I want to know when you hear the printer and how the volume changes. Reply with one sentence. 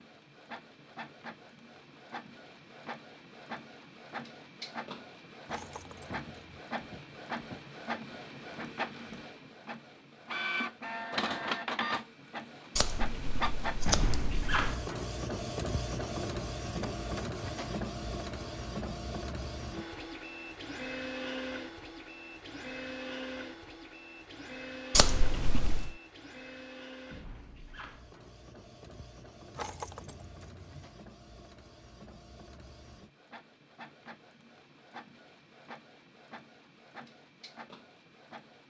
The printer can be heard from 0.0 to 38.6 s, getting louder then quieter.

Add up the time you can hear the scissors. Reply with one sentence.
You can hear the scissors for 3 seconds altogether.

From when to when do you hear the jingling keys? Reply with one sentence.
The jingling keys can be heard from 5.5 to 6.6 s and from 29.6 to 30.9 s.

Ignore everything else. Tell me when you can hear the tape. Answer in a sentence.
The tape can't be heard in this clip.